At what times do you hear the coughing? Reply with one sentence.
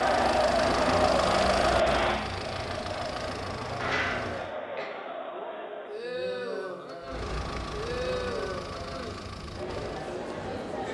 You can hear the coughing from 3.8 to 4.9 s.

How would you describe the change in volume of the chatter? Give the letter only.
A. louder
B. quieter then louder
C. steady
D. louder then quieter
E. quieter
E.